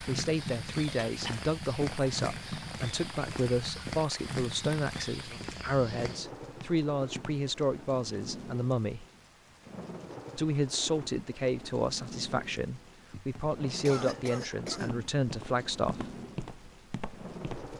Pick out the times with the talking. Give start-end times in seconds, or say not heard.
0.0-9.1, 10.3-16.1.